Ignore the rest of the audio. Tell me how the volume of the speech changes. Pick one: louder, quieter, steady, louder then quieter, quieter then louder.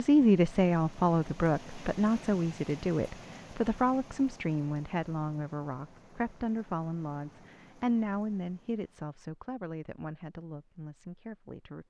quieter.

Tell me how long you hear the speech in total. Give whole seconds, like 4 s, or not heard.
12 s.